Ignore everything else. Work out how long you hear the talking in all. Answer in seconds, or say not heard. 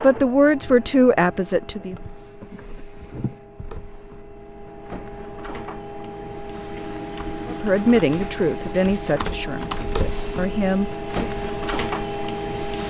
6 s.